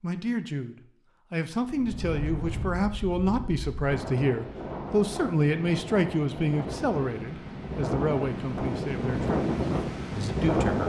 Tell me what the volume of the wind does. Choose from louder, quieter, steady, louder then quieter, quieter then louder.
louder.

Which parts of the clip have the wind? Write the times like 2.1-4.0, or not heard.
1.6-10.8.